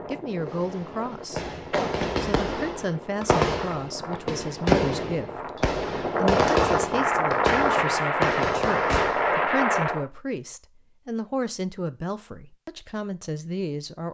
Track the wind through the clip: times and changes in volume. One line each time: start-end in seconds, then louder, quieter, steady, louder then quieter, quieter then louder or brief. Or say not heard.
0.0-10.1 louder.